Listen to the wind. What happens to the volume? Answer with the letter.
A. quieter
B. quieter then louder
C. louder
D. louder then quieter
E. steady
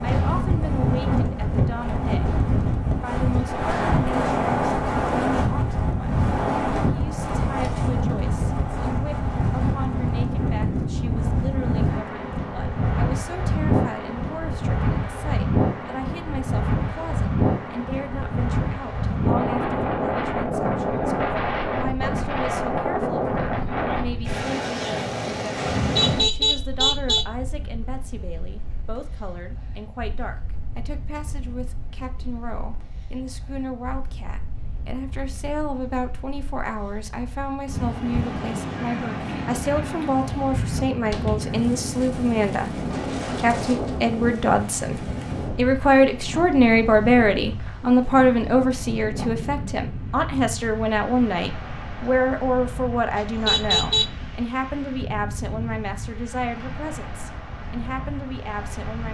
A.